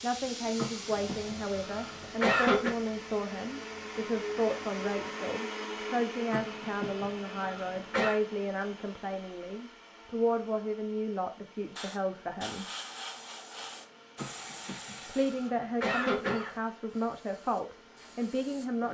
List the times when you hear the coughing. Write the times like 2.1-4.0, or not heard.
0.6-2.8, 6.3-8.2, 14.2-16.6.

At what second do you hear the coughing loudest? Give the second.
2 s.